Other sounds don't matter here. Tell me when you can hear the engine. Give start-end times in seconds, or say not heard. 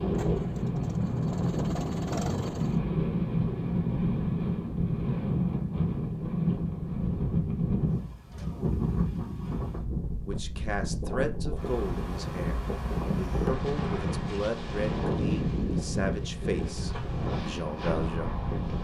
0.0-2.8.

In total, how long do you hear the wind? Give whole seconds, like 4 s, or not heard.
19 s.